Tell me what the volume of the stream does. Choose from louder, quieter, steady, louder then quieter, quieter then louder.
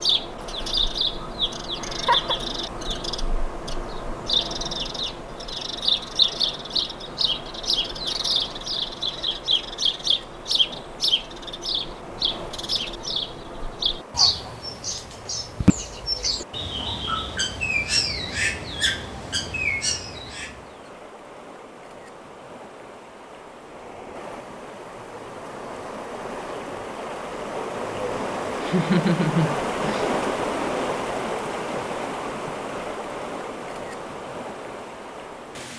louder.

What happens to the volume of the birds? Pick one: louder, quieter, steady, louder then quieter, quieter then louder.
steady.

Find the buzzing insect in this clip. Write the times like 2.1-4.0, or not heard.
not heard.